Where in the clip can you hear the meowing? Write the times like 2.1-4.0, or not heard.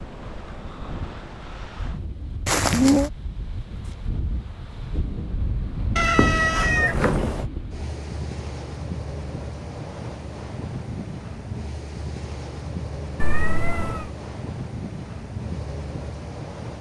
2.5-3.1, 6.0-7.5, 13.2-14.1.